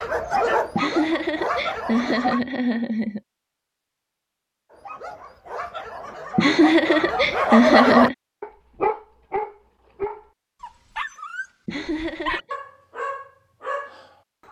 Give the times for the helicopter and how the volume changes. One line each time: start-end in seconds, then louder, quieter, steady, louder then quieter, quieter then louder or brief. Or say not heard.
not heard.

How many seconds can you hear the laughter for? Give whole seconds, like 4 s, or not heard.
5 s.